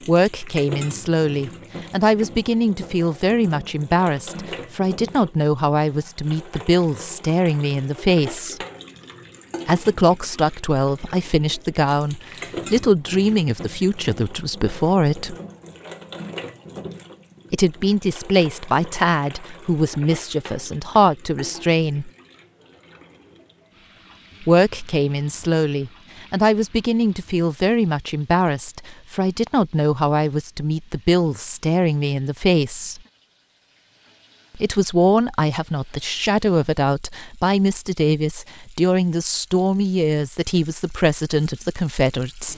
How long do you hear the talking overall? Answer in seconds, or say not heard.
35 s.